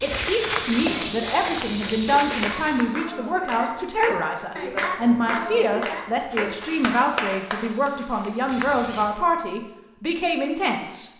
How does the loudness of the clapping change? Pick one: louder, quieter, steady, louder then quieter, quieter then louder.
louder.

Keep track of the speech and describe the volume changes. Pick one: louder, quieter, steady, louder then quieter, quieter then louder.
steady.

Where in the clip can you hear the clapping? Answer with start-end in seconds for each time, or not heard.
0.6-7.9.